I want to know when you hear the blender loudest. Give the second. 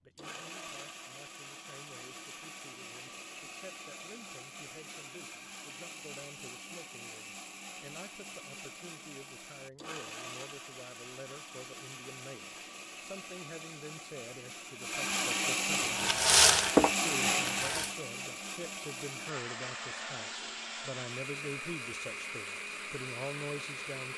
17 s.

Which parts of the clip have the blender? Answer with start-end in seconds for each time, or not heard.
0.1-24.1.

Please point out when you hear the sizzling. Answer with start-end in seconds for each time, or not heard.
15.8-17.9.